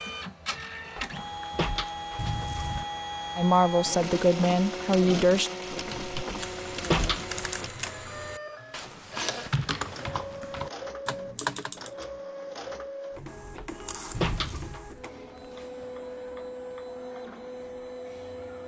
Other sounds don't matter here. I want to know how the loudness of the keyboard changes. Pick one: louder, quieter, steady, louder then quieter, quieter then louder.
louder.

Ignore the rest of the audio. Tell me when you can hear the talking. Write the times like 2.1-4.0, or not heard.
3.4-5.5.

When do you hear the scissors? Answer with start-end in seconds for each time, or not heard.
2.1-2.9, 14.1-14.8.